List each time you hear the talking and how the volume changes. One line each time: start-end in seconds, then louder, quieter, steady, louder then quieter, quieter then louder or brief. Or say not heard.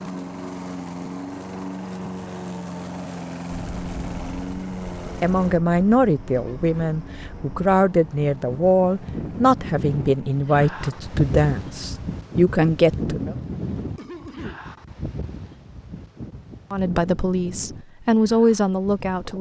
5.2-13.3 steady
16.7-19.3 brief.